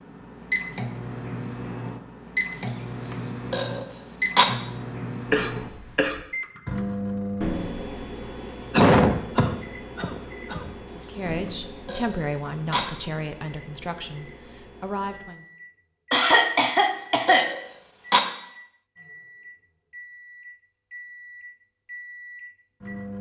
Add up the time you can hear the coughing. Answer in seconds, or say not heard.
4 s.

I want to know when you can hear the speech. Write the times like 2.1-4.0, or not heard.
10.8-15.4.